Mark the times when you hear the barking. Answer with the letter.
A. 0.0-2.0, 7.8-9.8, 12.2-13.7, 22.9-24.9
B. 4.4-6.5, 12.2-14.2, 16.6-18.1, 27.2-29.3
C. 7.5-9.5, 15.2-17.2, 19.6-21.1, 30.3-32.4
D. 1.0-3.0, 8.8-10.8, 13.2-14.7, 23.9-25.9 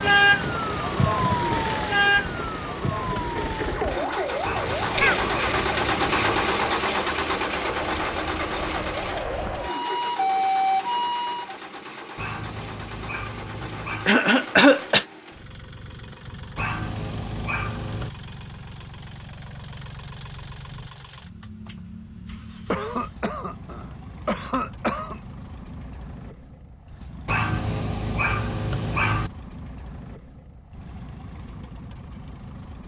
B.